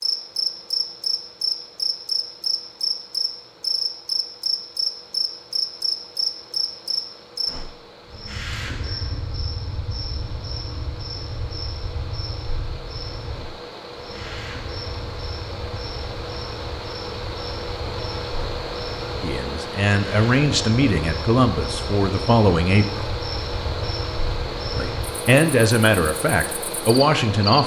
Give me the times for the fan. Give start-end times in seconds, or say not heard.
0.0-27.6.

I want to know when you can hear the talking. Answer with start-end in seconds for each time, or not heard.
19.2-23.2, 24.7-27.6.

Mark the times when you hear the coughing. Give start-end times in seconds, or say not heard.
not heard.